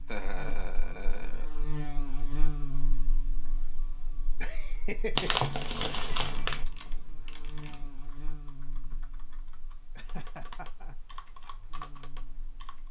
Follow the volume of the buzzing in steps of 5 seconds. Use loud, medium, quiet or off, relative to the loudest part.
loud, medium, quiet.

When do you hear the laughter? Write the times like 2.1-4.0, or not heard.
0.1-1.4, 4.4-6.4, 9.9-11.2.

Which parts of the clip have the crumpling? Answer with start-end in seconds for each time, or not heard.
5.2-6.7.